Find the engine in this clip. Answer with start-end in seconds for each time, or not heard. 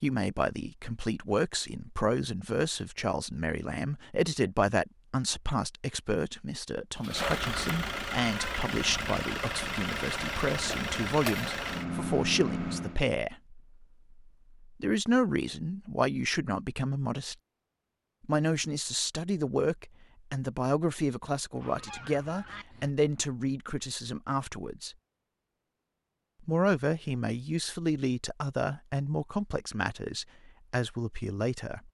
7.0-13.0.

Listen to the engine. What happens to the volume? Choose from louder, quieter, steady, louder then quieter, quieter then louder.
steady.